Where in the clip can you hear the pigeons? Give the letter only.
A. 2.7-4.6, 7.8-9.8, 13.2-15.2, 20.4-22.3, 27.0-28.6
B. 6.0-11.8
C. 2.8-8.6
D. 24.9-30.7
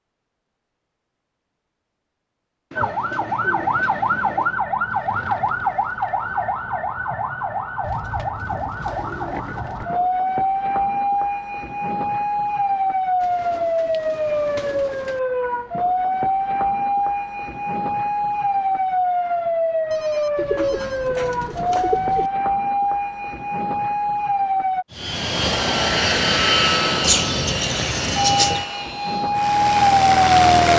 A.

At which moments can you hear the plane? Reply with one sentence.
You can hear the plane from 24.9 to 30.7 s.